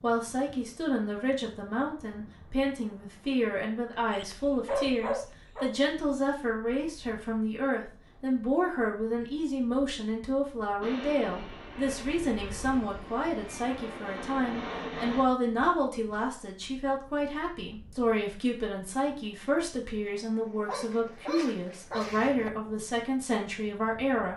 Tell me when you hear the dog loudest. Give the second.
5 s.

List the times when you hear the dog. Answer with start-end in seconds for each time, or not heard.
4.1-5.8, 20.6-22.5.